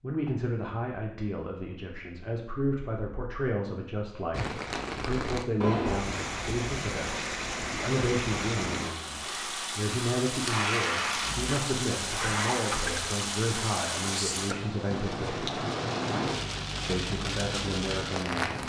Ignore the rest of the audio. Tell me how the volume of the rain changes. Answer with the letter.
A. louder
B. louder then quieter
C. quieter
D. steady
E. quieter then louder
D.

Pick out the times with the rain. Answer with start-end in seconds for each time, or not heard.
4.3-18.6.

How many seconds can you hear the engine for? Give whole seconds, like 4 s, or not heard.
2 s.